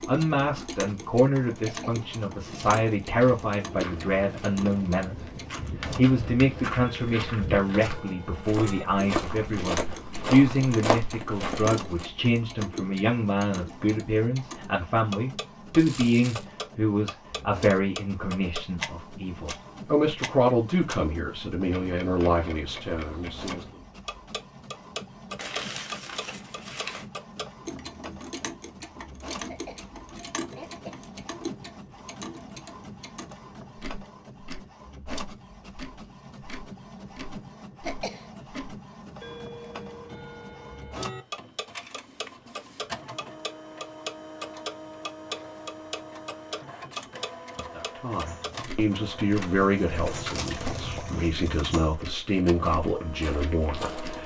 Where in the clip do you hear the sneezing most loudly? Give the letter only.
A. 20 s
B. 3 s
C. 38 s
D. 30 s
C.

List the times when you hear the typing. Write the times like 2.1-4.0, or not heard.
not heard.